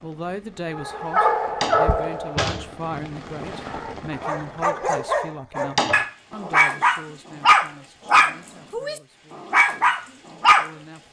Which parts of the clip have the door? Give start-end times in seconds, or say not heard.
1.4-2.7, 5.6-6.5.